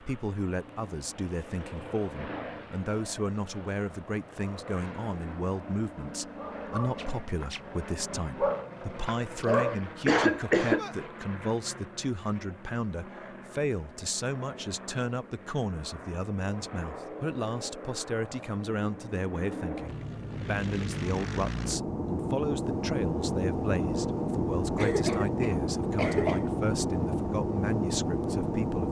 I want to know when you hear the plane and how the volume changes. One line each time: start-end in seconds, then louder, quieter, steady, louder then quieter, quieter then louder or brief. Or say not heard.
0.0-28.8 louder.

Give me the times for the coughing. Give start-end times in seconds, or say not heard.
9.6-10.8, 24.8-26.5.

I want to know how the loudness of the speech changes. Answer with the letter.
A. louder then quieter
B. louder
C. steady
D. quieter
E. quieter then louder
C.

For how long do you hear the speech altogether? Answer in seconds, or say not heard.
29 s.